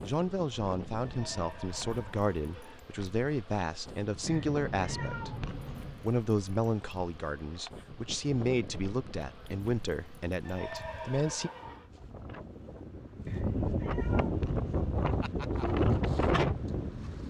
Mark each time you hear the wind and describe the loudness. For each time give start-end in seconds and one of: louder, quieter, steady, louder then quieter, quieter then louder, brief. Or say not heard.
0.0-17.2 louder.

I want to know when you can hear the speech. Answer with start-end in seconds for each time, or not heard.
0.0-11.5.